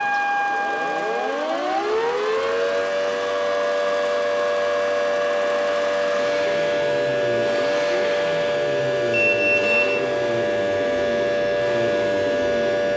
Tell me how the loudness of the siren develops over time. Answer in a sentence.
The volume of the siren stays about the same.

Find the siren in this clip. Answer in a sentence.
You can hear the siren from 0.0 to 12.9 s.